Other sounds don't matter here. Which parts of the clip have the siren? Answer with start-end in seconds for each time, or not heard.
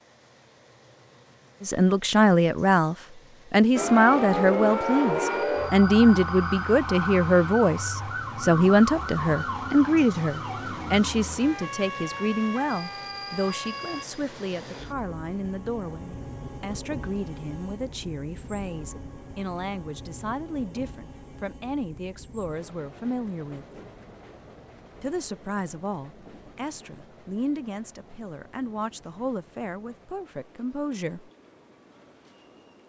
3.8-14.1.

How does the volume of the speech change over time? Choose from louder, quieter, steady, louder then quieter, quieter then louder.
quieter.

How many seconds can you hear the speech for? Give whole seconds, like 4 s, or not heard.
28 s.